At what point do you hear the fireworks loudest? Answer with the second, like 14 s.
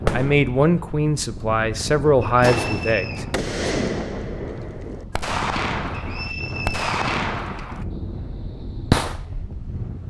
9 s.